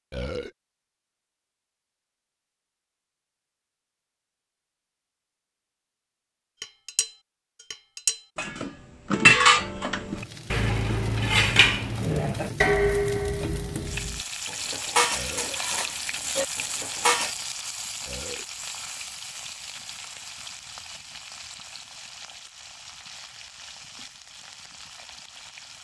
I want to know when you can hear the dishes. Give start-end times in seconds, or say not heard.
6.6-7.1, 7.7-17.4.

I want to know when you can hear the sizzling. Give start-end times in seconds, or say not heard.
10.1-25.7.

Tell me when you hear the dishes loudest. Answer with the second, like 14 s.
9 s.